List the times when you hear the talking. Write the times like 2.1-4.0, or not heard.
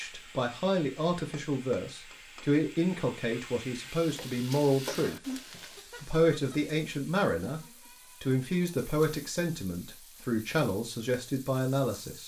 0.0-5.2, 6.0-7.6, 8.2-12.2.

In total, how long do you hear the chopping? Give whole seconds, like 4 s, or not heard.
not heard.